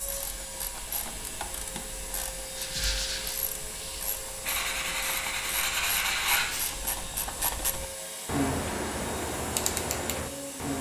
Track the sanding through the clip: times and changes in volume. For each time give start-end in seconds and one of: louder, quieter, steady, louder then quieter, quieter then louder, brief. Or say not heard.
2.5-6.8 quieter then louder.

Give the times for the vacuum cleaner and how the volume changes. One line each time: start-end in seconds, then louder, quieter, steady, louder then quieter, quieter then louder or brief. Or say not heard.
0.0-10.7 steady.